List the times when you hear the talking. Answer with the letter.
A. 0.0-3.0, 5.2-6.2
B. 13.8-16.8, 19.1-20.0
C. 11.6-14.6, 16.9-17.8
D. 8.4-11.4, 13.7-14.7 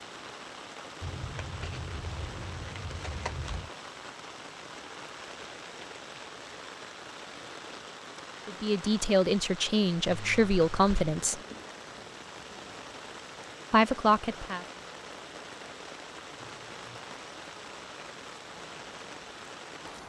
D.